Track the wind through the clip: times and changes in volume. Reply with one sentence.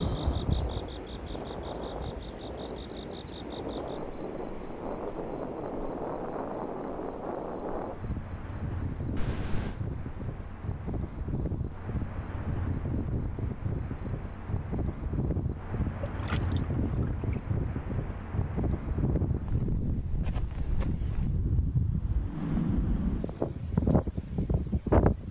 The wind can be heard from 0.0 to 25.2 s, getting louder.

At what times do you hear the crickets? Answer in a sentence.
You can hear the crickets from 0.0 to 25.2 s.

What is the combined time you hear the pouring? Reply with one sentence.
The pouring can be heard for 2 seconds in total.